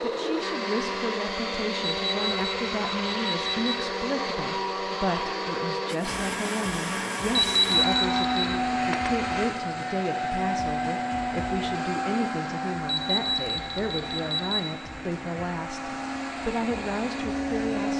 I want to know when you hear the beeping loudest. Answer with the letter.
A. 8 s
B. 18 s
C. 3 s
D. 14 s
A.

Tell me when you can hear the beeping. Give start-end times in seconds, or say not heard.
1.9-3.8, 7.3-8.4, 12.8-14.6.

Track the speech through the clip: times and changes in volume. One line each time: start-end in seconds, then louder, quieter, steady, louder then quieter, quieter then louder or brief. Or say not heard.
0.0-17.9 steady.